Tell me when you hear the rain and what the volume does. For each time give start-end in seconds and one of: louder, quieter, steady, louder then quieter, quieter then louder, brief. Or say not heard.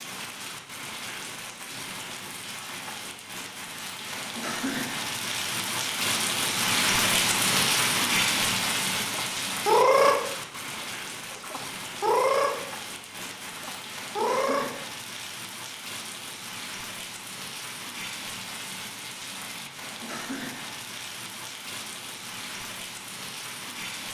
0.0-24.0 louder then quieter.